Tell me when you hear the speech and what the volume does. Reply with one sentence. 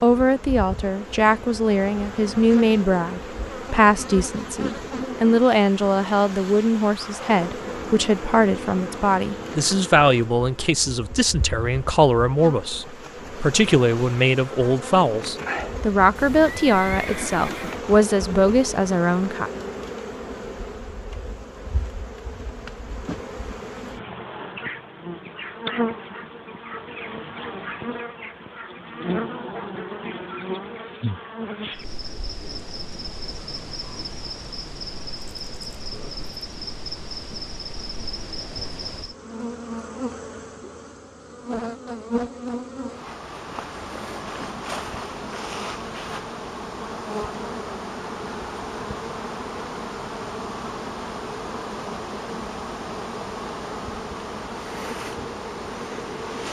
You can hear the speech from 0.0 to 19.5 s, at a steady volume.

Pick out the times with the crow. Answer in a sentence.
The crow can't be heard in this clip.